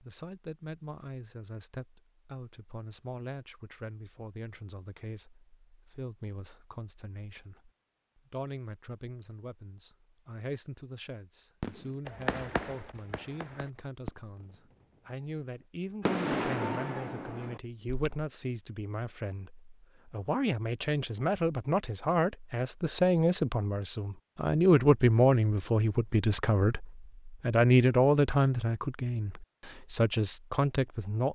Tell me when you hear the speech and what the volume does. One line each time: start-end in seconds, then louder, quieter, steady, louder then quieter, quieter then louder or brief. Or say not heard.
0.0-31.3 louder.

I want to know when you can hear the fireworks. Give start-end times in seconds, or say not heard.
11.6-14.8, 16.1-18.2.